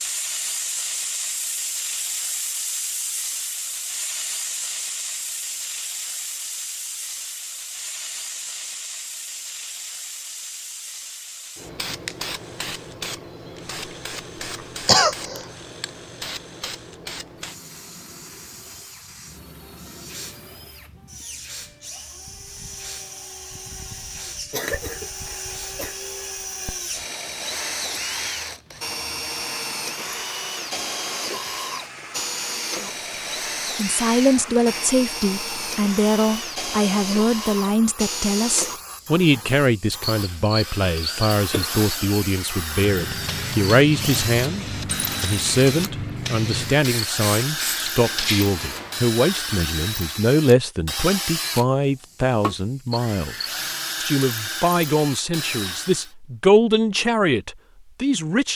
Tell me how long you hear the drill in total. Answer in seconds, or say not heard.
44 s.